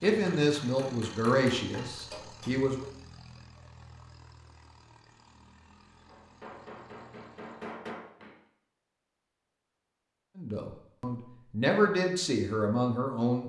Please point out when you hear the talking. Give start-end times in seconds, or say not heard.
0.0-2.9, 10.3-13.4.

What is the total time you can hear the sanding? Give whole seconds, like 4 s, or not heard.
not heard.